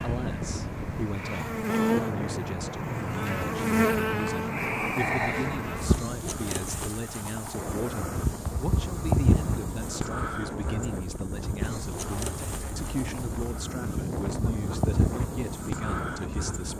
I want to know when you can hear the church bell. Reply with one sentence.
You can't hear the church bell here.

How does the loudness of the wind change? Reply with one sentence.
The volume of the wind stays about the same.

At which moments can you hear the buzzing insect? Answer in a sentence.
You can hear the buzzing insect from 0.0 to 16.7 s.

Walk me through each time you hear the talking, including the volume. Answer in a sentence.
The talking can be heard from 0.0 to 16.7 s, at a steady volume.